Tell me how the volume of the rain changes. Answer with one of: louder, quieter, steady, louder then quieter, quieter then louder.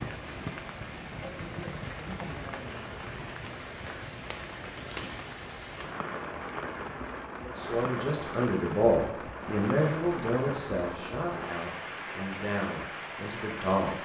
steady.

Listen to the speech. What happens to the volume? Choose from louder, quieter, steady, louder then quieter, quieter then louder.
quieter.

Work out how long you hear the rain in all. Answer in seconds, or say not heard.
14 s.